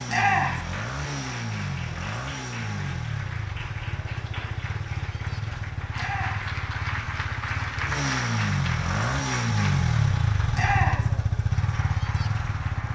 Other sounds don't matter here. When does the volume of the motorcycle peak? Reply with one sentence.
The volume of the motorcycle peaks at 10 seconds.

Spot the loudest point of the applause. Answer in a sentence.
The volume of the applause peaks at 8 seconds.